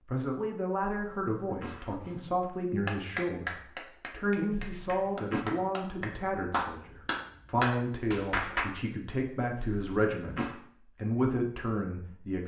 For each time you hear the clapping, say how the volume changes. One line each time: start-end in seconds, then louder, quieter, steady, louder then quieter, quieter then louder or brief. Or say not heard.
2.9-8.7 quieter then louder.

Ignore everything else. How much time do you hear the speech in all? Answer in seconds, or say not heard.
12 s.